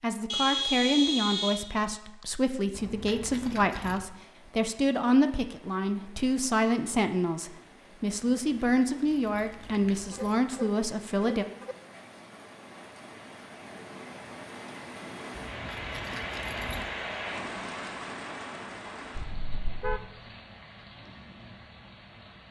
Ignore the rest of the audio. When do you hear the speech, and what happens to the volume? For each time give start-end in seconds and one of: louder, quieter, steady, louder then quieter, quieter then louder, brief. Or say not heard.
0.0-11.4 steady.